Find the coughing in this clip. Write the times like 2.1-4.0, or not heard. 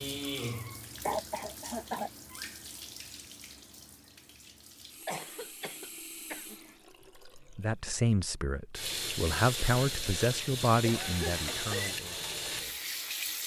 1.1-2.1, 5.0-6.5, 10.8-11.9.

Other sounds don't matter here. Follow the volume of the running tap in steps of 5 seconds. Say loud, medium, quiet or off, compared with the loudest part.
medium, medium, loud.